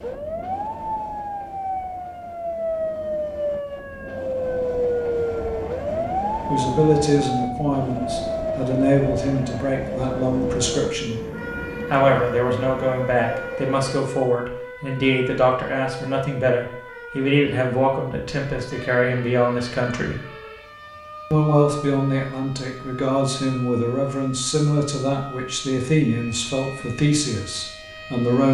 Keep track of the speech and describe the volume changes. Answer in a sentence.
The loudness of the speech stays about the same.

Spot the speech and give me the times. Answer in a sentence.
You can hear the speech from 5.9 to 11.2 s, from 11.9 to 20.2 s and from 21.3 to 28.4 s.